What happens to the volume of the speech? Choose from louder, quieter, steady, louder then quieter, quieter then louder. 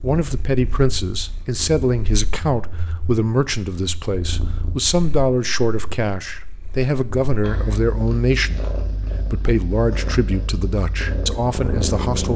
steady.